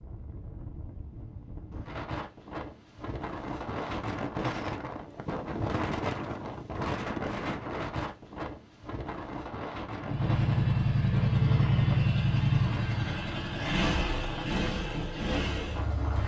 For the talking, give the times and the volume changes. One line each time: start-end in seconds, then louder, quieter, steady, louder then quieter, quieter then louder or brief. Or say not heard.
not heard.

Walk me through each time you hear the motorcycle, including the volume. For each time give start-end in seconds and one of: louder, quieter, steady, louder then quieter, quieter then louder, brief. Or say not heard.
10.0-16.2 quieter.